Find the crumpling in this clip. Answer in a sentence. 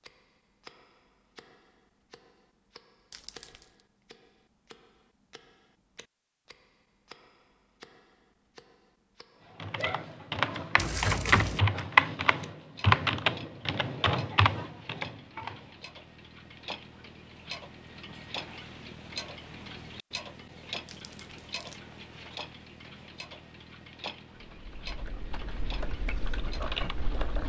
The crumpling can be heard from 3.1 to 3.6 s, from 10.8 to 11.6 s and from 20.9 to 21.8 s.